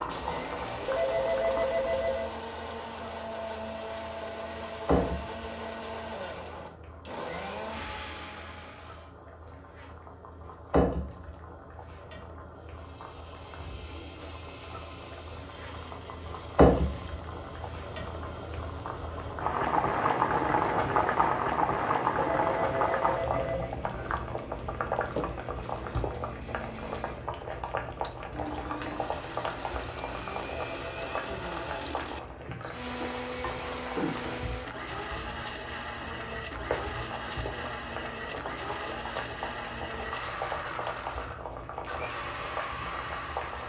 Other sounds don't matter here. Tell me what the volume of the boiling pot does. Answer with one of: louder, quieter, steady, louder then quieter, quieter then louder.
louder then quieter.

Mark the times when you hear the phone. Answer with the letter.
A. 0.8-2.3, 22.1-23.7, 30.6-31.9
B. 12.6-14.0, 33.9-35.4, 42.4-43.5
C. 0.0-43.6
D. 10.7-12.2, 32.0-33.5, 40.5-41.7
A.